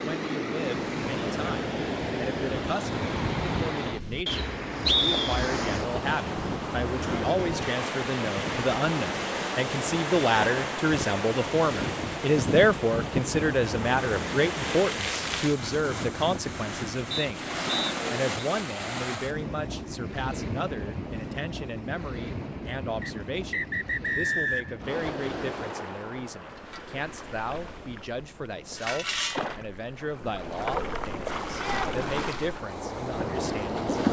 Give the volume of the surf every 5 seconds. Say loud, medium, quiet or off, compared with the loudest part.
loud, loud, loud, loud, medium, medium, loud.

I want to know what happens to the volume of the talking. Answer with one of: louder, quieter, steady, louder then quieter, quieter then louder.
louder then quieter.